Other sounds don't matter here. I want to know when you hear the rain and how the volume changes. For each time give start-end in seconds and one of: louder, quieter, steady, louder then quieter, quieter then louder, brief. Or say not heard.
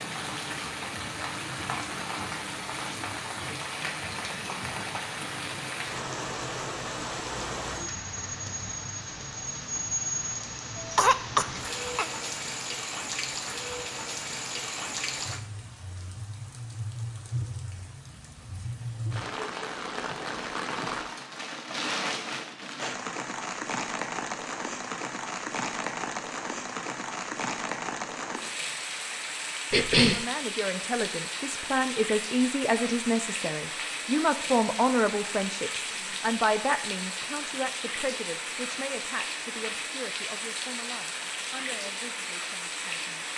0.0-43.3 steady.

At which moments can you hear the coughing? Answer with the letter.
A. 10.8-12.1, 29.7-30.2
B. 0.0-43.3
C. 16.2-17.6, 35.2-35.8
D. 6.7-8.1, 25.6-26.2
A.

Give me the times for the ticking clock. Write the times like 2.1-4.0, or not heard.
not heard.